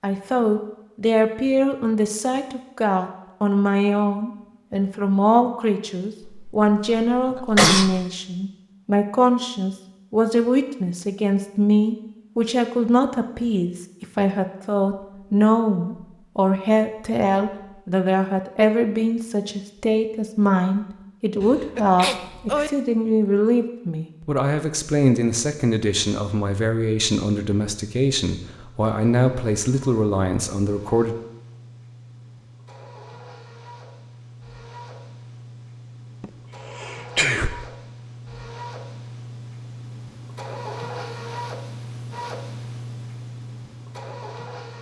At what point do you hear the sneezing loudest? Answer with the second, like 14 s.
8 s.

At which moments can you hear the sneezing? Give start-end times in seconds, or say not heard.
6.2-8.0, 21.4-22.7, 36.2-37.6.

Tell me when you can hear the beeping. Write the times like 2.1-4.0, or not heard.
not heard.